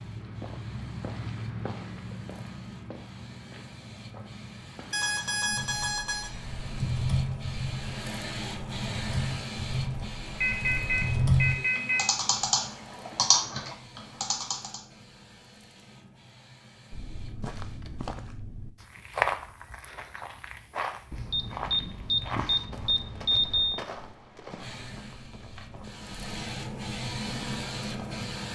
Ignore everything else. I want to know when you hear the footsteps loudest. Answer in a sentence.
The loudest moment of the footsteps is at 19 seconds.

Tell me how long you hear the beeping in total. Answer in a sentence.
The beeping can be heard for 6 seconds in total.